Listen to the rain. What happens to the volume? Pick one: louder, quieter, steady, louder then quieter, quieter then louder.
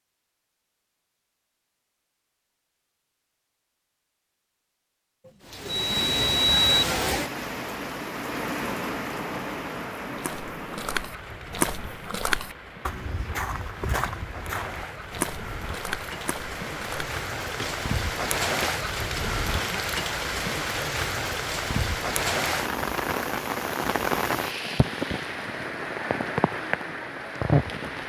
quieter then louder.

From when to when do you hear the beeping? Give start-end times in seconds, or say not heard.
5.2-6.8.